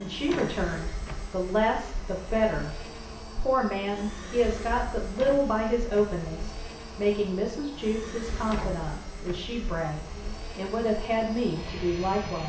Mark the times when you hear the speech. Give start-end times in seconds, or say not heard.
0.0-12.4.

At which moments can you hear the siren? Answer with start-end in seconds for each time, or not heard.
not heard.